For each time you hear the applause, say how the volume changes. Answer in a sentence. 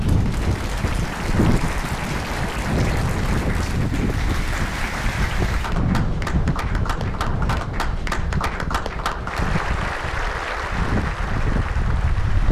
The applause can be heard from 0.0 to 12.4 s, at a steady volume.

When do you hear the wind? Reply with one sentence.
The wind can be heard from 0.0 to 12.4 s.